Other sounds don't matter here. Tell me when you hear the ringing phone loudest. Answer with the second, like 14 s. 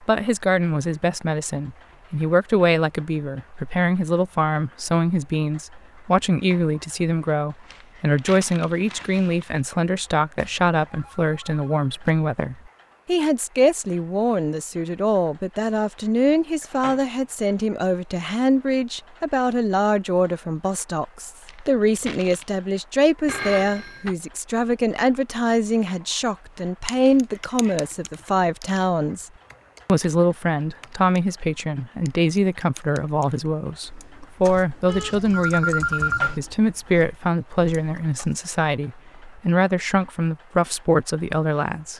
36 s.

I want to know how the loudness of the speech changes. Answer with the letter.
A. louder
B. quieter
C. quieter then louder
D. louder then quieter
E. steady
E.